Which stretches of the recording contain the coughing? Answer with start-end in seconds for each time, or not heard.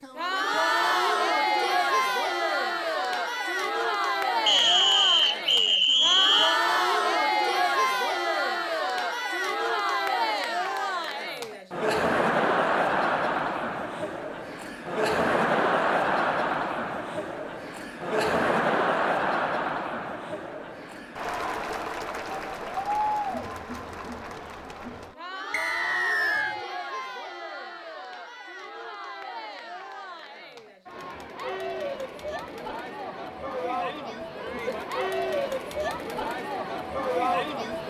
not heard.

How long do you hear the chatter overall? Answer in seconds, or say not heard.
38 s.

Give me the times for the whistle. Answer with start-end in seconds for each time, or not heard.
4.5-6.6, 25.5-26.6.